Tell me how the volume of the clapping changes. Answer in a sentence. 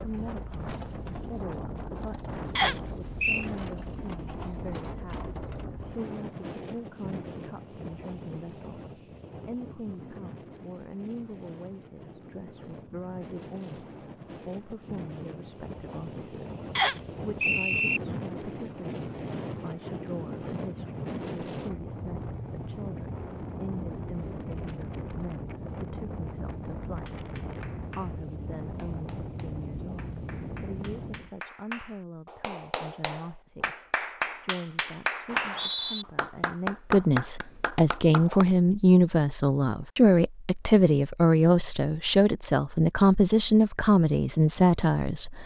The volume of the clapping goes up.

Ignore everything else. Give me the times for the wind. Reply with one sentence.
You can hear the wind from 0.0 to 31.3 s.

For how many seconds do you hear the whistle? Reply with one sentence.
The whistle can be heard for 3 seconds in total.